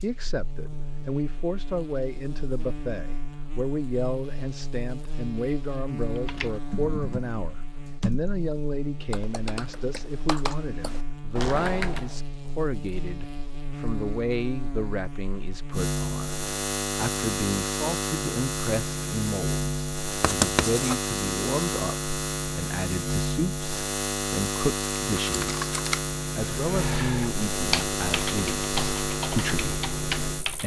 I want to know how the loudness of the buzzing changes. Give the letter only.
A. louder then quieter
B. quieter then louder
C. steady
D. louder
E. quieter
D.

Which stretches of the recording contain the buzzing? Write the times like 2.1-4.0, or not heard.
0.0-30.6.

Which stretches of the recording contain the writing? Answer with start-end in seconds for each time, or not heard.
20.2-20.9.